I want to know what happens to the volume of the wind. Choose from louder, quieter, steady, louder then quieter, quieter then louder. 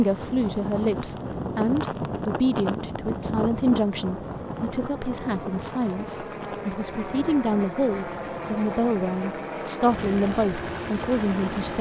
quieter.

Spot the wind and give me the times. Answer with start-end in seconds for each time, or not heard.
0.0-9.2.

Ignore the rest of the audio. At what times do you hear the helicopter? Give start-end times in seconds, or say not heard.
0.0-11.7.